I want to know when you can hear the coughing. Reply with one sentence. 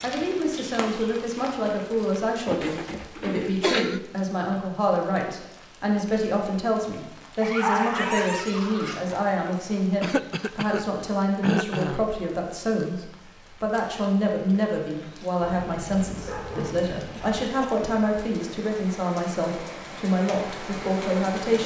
The coughing can be heard from 2.5 to 4.0 s, from 10.0 to 12.1 s and from 17.1 to 18.1 s.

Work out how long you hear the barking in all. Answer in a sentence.
The barking can be heard for 4 seconds in total.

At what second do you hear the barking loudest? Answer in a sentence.
The volume of the barking peaks at 8 seconds.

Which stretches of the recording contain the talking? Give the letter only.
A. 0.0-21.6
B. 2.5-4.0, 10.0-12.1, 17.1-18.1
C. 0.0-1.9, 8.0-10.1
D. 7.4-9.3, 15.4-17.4
A.